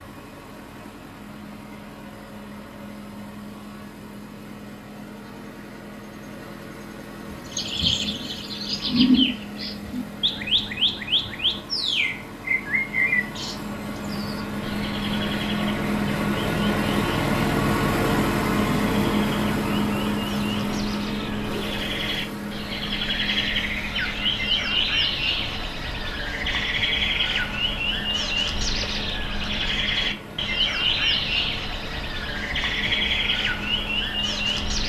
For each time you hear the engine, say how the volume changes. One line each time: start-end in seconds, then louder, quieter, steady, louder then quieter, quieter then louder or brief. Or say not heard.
0.0-34.8 louder then quieter.